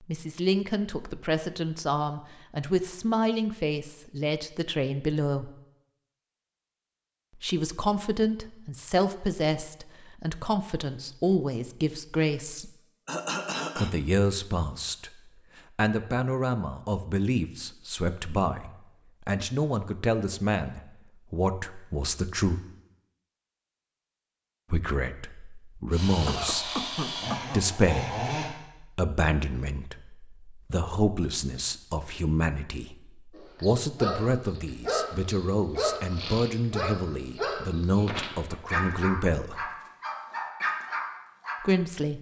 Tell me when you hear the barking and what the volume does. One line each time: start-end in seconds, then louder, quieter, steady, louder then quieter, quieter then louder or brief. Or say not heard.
33.4-41.6 steady.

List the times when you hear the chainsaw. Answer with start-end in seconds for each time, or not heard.
25.9-28.5.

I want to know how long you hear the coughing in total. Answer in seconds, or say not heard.
3 s.